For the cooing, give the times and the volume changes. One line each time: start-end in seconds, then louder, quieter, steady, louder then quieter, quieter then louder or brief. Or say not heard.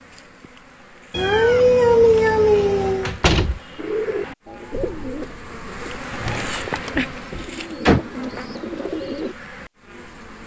3.8-9.3 quieter then louder.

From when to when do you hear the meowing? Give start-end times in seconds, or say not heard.
1.1-3.1, 6.3-7.0.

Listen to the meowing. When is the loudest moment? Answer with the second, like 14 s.
2 s.